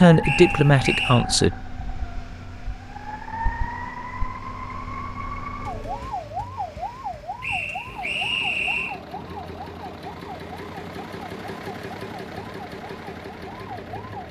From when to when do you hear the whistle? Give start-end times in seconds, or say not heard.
0.2-1.2, 7.4-9.0.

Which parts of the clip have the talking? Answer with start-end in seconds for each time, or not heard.
0.0-1.6.